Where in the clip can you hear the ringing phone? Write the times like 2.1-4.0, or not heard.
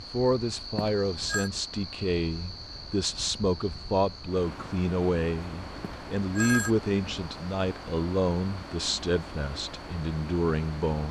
0.8-1.5, 5.8-6.7.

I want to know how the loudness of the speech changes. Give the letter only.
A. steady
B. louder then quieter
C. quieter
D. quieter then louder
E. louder
A.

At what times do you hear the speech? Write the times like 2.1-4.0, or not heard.
0.0-11.0.